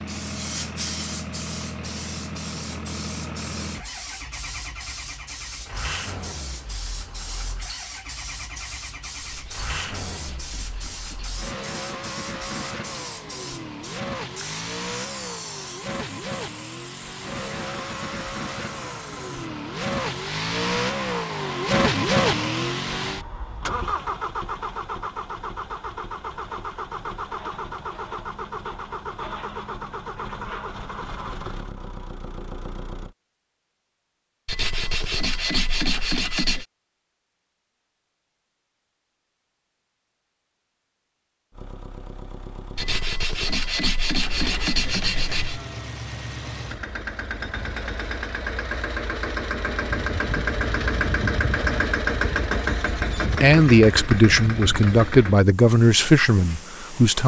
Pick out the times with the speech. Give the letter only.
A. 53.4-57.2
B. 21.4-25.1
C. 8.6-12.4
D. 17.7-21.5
A.